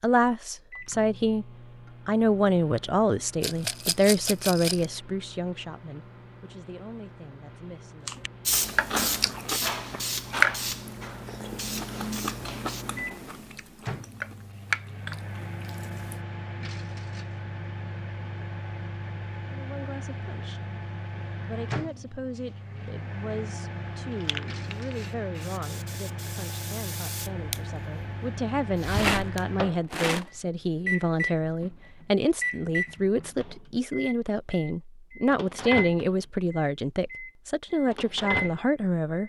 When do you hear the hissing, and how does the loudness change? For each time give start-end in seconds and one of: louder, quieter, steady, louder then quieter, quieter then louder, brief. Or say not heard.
8.4-12.8 quieter
24.0-29.6 louder.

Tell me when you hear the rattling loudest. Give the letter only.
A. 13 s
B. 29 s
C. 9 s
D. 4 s
B.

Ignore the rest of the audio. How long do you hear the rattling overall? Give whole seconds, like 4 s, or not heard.
3 s.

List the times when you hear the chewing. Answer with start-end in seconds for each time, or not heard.
8.1-16.2.